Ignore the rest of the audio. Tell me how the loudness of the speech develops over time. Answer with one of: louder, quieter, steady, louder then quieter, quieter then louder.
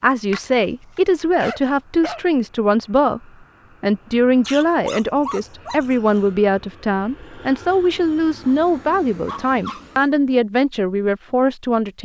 steady.